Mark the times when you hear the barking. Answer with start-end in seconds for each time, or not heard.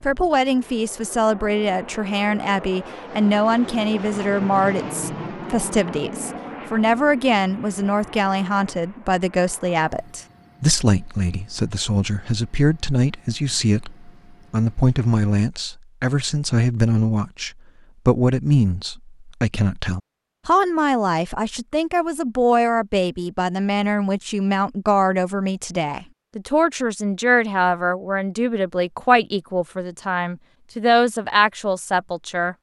not heard.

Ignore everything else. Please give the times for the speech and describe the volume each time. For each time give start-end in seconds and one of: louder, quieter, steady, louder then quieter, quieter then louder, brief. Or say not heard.
0.0-32.5 steady.